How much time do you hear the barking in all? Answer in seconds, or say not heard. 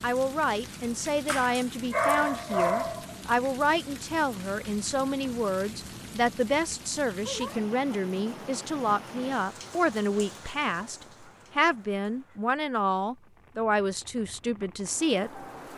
2 s.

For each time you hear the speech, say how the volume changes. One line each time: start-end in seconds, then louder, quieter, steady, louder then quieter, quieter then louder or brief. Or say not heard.
0.0-15.7 steady.